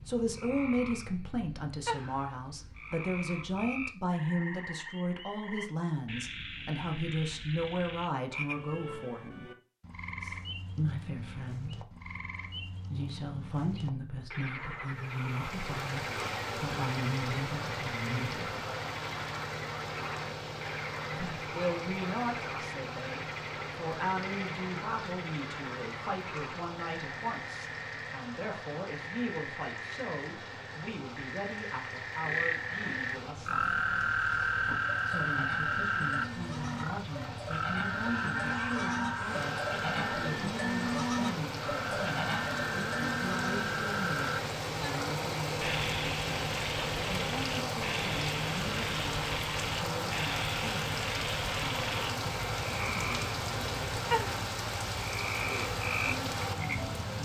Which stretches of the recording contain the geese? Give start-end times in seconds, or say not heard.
38.0-39.5.